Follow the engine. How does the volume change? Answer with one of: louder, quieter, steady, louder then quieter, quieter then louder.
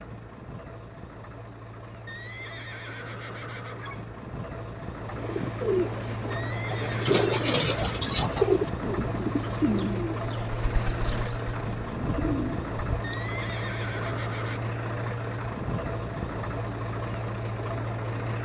louder.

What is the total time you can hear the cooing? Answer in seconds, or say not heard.
8 s.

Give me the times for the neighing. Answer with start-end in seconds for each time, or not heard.
2.0-4.1, 6.3-8.2, 13.0-14.6.